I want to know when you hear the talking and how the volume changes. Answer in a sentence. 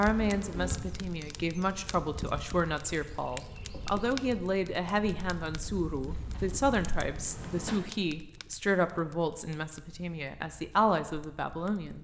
You can hear the talking from 0.0 to 11.9 s, at a steady volume.